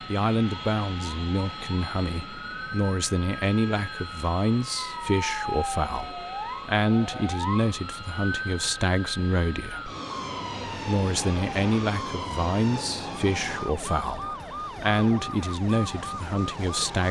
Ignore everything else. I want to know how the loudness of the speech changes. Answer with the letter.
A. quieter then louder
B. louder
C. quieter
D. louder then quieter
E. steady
E.